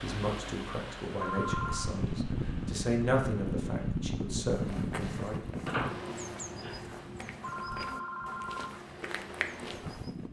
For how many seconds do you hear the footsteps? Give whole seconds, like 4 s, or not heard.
6 s.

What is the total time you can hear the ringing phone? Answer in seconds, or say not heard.
2 s.